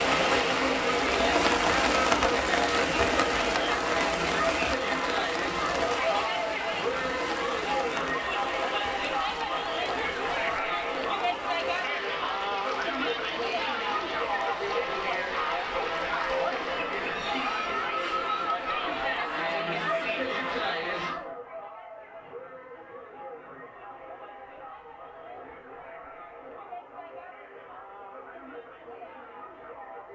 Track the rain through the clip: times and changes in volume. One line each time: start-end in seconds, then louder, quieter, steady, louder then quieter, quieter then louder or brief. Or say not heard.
0.0-16.8 quieter.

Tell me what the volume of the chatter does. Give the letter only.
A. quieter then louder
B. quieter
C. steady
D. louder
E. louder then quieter
B.